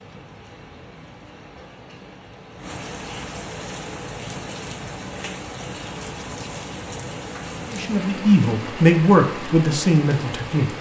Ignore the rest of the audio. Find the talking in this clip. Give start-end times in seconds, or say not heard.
7.7-10.7.